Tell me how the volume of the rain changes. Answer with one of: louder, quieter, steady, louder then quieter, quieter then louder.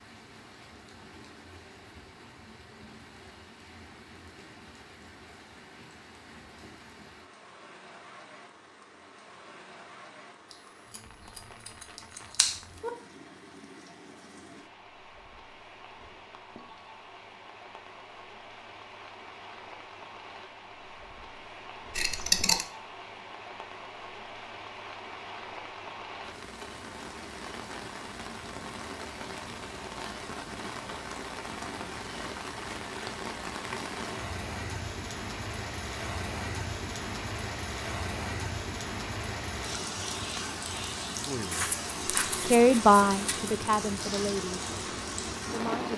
louder.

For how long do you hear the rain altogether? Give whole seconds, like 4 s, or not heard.
46 s.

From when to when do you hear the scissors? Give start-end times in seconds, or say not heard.
10.5-12.9, 21.9-22.6, 41.5-43.5.